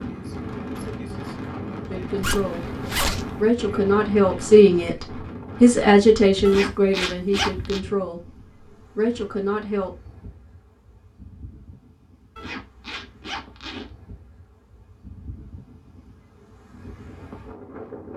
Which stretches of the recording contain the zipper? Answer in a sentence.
You can hear the zipper from 2.2 to 3.5 s, from 6.5 to 7.8 s and from 12.3 to 13.9 s.